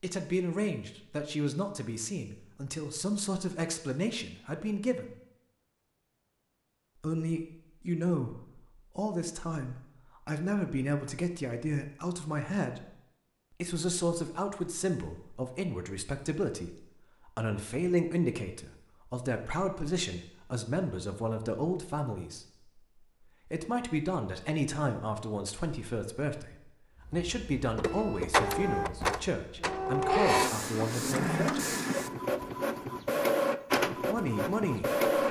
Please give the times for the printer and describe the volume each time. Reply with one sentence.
You can hear the printer from 27.1 to 35.2 s, at a steady volume.